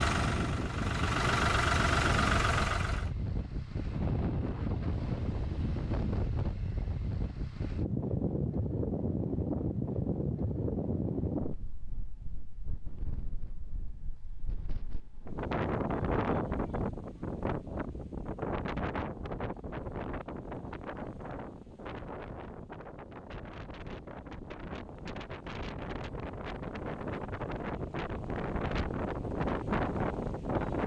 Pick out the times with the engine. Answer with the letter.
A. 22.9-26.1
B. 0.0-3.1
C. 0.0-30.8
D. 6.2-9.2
B.